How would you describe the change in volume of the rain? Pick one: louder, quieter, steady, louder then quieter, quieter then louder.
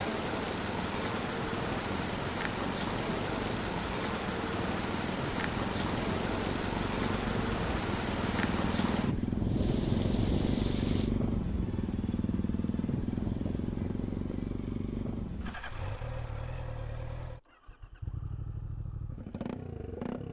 steady.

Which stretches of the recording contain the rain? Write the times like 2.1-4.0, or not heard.
0.0-11.1.